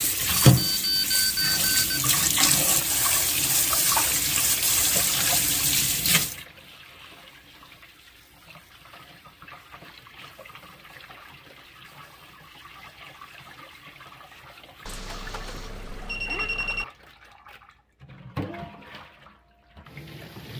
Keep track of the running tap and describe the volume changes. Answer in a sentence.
The volume of the running tap goes down, then up.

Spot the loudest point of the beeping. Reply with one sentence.
The volume of the beeping peaks at 1 second.